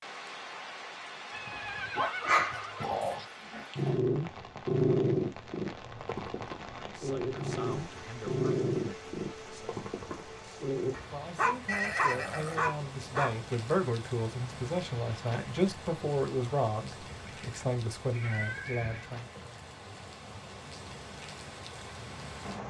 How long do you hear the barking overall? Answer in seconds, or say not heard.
12 s.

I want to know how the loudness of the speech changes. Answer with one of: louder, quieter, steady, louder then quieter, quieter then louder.
louder.